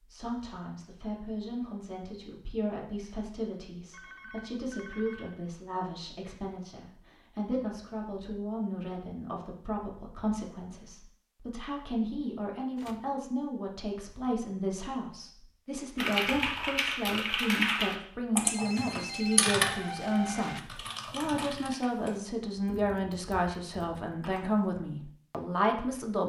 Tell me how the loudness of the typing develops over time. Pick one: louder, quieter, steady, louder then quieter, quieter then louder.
quieter.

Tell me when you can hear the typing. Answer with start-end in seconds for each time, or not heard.
15.9-24.6.